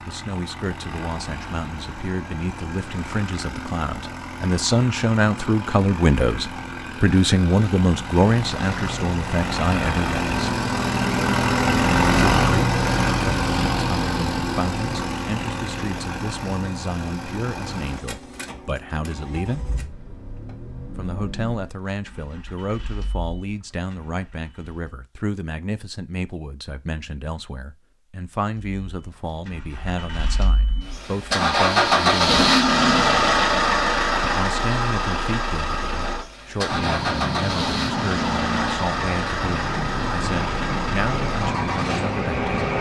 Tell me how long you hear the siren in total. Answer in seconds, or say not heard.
6 s.